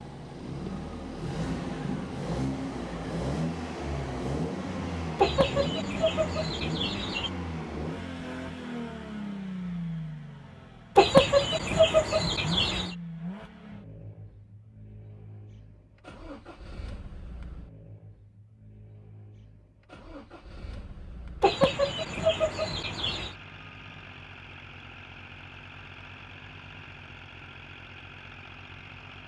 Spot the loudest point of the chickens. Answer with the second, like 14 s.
11 s.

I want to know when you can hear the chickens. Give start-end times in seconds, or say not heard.
5.2-7.3, 10.9-12.9, 21.4-23.4.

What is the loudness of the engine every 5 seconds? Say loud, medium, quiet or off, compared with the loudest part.
loud, loud, medium, quiet, quiet, quiet.